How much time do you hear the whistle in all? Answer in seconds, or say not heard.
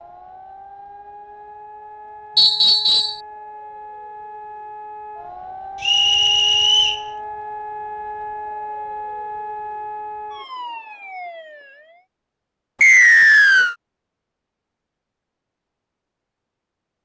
3 s.